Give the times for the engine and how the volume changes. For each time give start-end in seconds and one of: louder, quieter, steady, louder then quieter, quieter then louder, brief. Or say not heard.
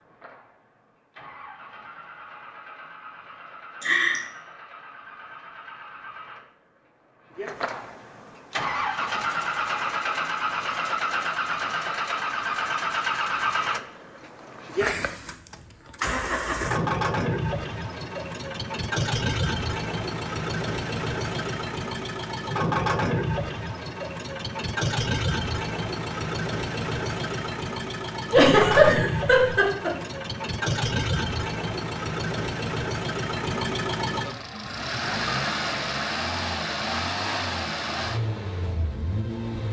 0.0-39.6 louder.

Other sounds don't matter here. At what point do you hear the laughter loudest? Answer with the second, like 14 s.
29 s.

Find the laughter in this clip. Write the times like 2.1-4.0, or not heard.
3.8-4.2, 28.3-29.9.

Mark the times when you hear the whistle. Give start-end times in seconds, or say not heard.
not heard.